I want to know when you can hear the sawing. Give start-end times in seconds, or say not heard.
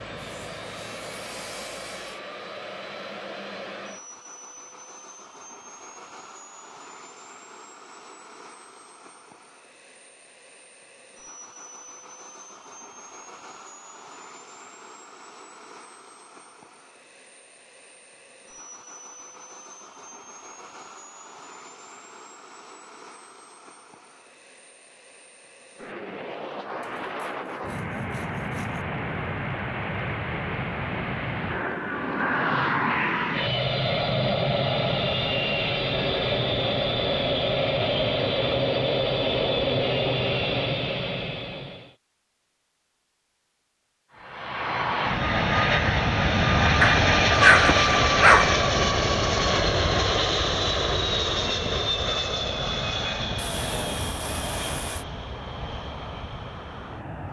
0.1-2.2, 26.8-28.9, 53.4-55.0.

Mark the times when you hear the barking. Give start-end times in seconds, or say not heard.
46.8-48.5.